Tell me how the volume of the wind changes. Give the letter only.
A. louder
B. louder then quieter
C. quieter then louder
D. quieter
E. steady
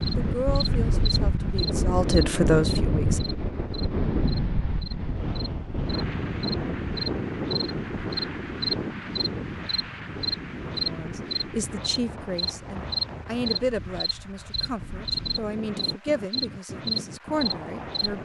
D.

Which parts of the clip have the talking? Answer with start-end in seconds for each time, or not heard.
0.1-3.2, 10.8-18.1.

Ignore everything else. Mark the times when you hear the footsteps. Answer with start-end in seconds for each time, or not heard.
not heard.